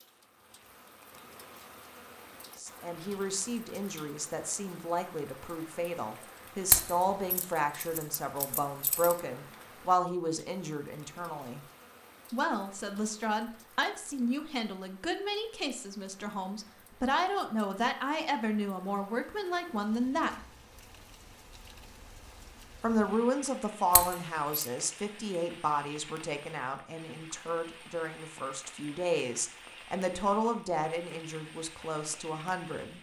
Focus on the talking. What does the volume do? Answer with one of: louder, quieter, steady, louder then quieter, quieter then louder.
steady.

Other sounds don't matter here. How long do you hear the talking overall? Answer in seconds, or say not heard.
27 s.